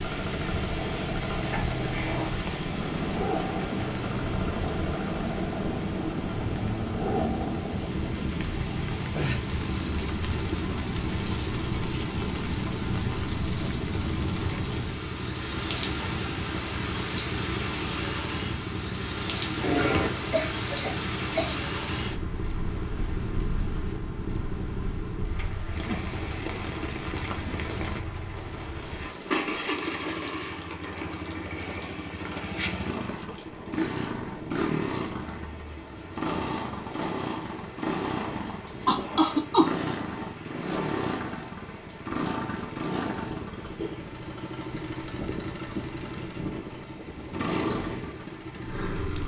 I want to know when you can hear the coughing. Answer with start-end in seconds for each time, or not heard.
1.4-2.4, 19.6-21.6, 38.9-39.7.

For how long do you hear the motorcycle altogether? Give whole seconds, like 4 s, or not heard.
49 s.